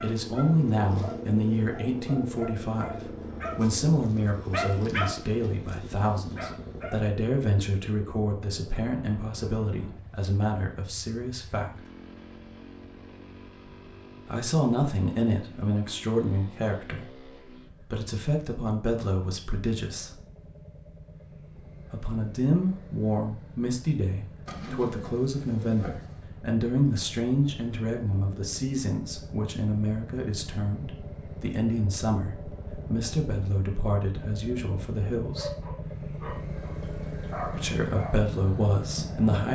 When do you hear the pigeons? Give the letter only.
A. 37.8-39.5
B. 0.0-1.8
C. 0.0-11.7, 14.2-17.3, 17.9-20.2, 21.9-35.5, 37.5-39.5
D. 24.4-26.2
D.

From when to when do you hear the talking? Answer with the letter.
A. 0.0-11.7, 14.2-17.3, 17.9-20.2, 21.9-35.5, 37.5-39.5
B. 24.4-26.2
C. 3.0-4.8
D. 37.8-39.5
A.